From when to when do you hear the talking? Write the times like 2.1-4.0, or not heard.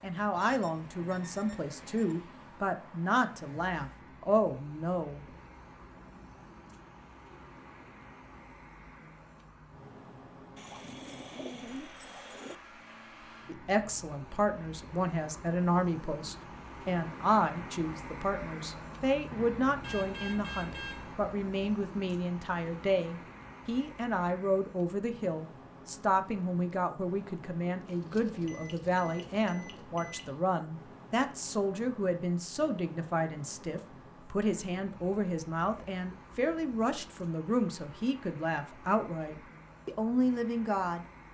0.0-5.2, 13.4-41.0.